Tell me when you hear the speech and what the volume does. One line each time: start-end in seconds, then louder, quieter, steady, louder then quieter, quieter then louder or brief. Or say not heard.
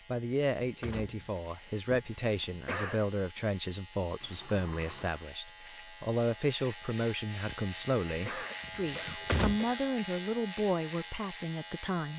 0.1-12.1 steady.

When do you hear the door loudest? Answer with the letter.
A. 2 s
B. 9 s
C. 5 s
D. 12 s
B.